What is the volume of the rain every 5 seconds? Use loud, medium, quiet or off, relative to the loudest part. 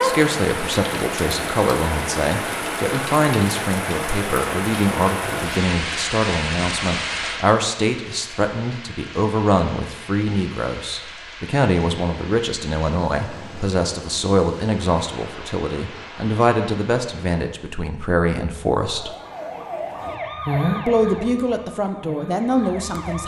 loud, loud, quiet, quiet, off.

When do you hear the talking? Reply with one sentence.
The talking can be heard from 0.0 to 19.1 s and from 20.9 to 23.2 s.